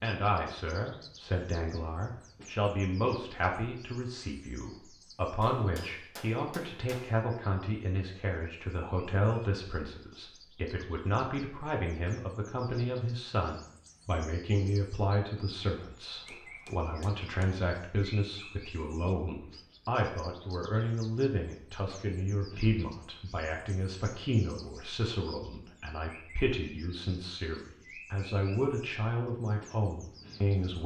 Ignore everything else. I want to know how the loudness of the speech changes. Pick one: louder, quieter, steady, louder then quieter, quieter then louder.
steady.